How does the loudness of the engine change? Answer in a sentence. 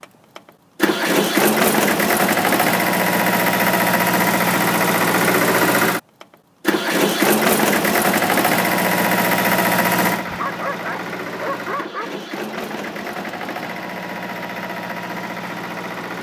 The loudness of the engine goes down.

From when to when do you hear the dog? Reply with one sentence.
You can hear the dog from 10.2 to 12.1 s.